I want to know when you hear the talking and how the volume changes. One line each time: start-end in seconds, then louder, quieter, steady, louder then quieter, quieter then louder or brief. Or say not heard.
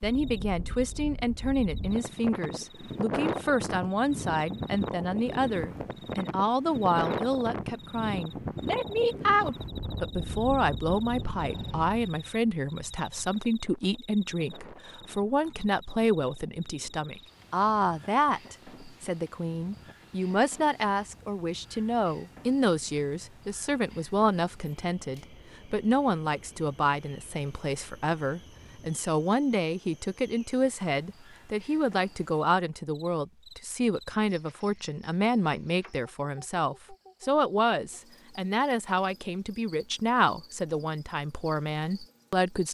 0.0-42.6 steady.